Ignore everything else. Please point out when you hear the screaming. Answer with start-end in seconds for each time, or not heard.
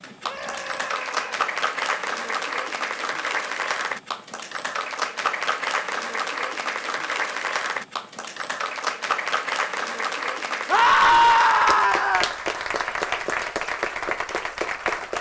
0.2-1.4, 10.7-12.3.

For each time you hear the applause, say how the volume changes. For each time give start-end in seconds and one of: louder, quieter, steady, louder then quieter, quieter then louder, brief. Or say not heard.
0.0-15.1 steady.